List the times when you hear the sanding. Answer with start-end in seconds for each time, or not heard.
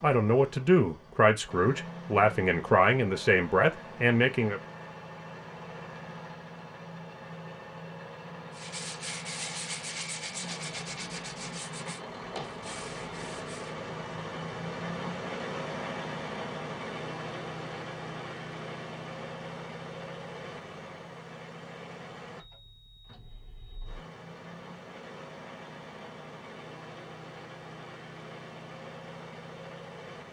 8.5-13.8.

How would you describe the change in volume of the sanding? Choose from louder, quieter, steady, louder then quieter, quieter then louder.
quieter.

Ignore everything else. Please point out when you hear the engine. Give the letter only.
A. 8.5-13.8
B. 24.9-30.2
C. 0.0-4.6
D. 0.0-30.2
D.